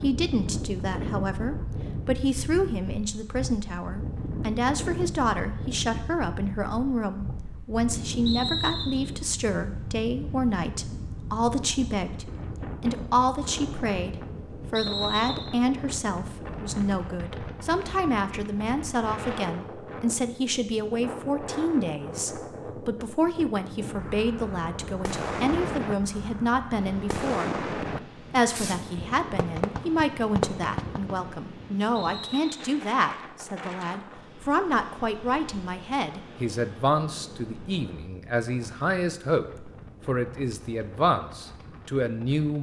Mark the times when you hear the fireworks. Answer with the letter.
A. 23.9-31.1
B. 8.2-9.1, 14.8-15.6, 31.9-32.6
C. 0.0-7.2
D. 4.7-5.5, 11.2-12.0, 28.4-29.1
A.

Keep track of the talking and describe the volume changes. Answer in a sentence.
The volume of the talking stays about the same.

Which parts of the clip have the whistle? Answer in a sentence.
The whistle can be heard from 8.2 to 9.1 s, from 14.8 to 15.6 s and from 31.9 to 32.6 s.